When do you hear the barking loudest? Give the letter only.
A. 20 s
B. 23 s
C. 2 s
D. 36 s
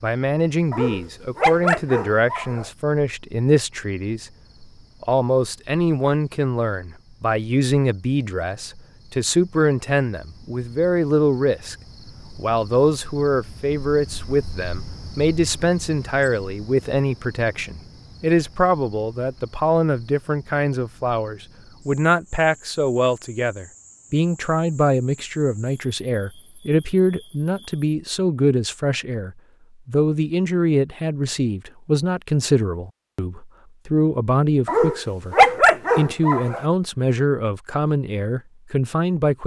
D.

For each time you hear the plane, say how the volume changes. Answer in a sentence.
The plane can't be heard in this clip.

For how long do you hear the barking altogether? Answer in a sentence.
You can hear the barking for 4 seconds altogether.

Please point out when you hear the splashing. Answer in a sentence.
The splashing can't be heard in this clip.